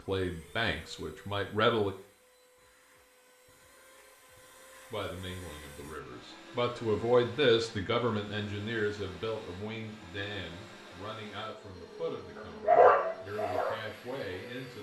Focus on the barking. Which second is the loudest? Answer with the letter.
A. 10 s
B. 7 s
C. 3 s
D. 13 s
D.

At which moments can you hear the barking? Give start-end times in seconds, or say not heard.
12.3-14.6.